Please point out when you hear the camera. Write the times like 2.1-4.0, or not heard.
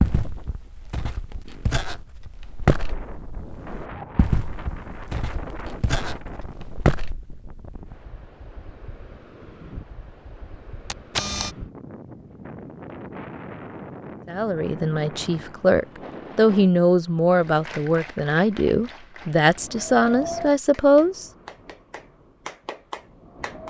10.9-11.6.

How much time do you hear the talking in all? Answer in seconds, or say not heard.
7 s.